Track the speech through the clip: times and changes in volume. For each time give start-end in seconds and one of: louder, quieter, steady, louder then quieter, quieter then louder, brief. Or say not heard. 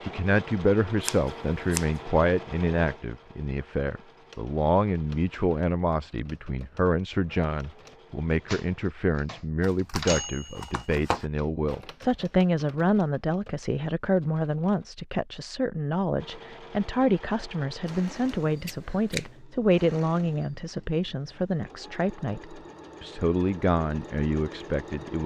0.0-25.2 steady.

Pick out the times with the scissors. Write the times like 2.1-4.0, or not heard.
1.0-1.9, 9.6-11.2, 17.9-19.3.